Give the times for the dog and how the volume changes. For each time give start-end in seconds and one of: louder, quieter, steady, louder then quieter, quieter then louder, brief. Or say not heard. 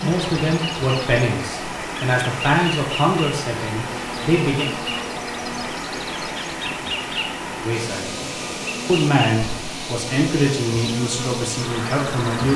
not heard.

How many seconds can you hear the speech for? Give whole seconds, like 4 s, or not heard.
9 s.